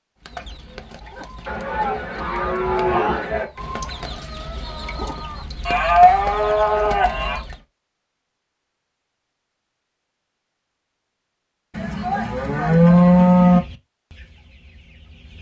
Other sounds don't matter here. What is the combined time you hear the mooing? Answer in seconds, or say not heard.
6 s.